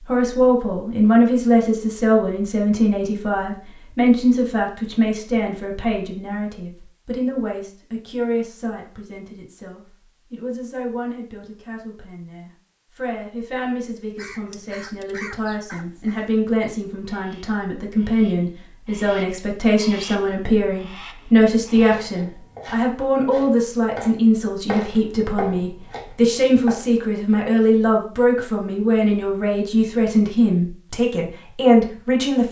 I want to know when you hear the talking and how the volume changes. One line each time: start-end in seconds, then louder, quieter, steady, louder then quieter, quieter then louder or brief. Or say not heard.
0.1-32.4 quieter then louder.